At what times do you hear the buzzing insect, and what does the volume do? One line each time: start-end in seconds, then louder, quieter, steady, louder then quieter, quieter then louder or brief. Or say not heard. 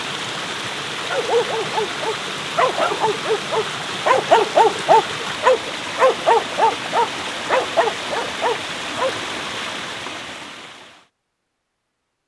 not heard.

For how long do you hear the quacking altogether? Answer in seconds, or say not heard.
not heard.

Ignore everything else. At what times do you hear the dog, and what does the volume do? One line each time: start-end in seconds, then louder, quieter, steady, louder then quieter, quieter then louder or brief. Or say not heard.
1.1-9.1 louder then quieter.